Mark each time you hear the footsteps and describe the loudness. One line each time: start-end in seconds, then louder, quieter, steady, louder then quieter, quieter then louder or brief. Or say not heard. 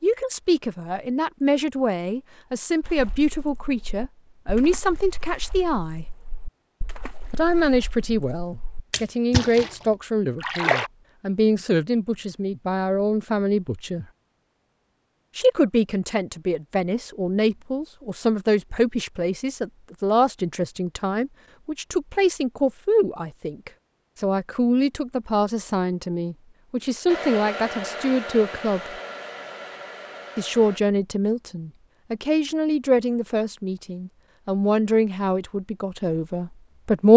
not heard.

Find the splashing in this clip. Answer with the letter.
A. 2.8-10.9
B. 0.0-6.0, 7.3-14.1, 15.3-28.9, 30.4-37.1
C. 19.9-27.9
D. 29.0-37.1
A.